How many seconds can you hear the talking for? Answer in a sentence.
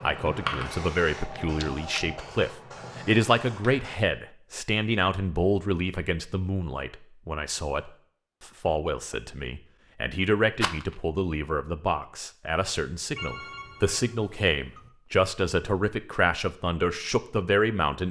You can hear the talking for 18 seconds altogether.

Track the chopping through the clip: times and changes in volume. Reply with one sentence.
You can't hear the chopping here.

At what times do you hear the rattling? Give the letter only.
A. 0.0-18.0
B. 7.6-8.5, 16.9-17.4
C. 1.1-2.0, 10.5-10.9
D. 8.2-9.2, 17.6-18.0
C.